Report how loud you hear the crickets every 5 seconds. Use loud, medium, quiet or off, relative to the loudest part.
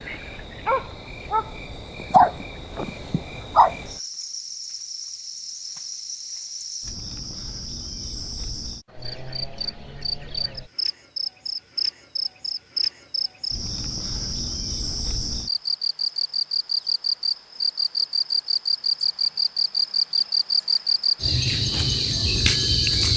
quiet, quiet, medium, loud, loud.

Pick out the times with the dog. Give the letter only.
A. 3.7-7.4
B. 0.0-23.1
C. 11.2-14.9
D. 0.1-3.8
D.